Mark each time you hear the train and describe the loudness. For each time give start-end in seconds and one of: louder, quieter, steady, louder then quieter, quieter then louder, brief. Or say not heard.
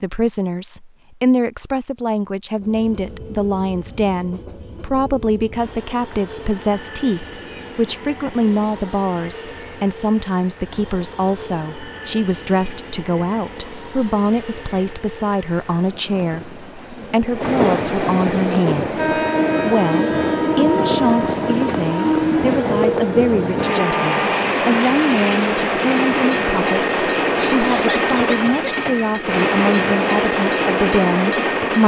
2.5-31.8 louder.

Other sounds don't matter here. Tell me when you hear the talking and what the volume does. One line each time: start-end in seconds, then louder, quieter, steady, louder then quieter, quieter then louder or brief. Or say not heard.
0.0-31.8 steady.